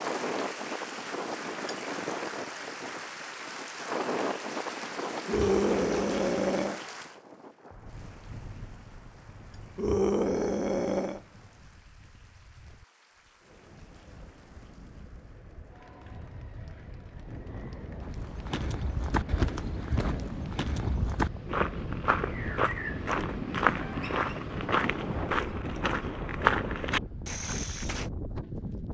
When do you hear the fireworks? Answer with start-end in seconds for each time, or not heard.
not heard.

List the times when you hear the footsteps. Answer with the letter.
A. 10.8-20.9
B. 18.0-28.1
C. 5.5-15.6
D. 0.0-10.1
B.